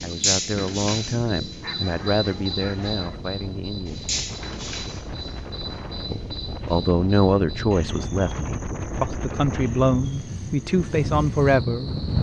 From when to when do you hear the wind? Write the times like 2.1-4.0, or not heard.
0.0-12.1.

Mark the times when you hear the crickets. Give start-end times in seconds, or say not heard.
0.0-12.1.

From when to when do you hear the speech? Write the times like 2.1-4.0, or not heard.
0.0-4.2, 6.1-12.1.